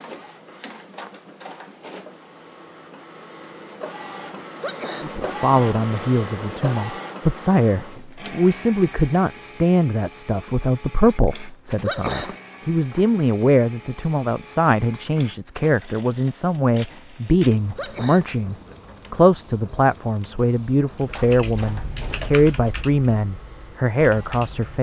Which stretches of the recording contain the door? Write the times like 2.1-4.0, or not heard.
not heard.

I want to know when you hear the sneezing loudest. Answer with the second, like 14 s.
12 s.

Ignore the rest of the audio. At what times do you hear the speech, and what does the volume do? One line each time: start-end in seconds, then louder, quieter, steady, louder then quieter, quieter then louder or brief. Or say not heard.
5.0-24.7 steady.